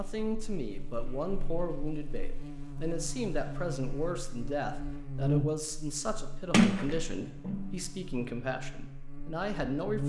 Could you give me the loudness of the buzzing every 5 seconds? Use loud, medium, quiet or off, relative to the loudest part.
medium, loud.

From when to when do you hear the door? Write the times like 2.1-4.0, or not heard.
6.5-7.7.